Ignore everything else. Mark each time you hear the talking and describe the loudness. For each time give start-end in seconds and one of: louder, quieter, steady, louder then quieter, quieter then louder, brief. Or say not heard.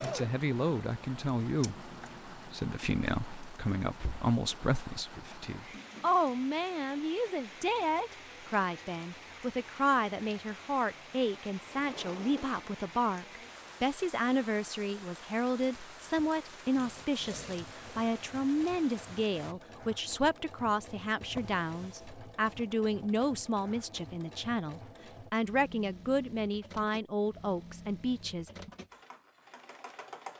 0.0-28.5 steady.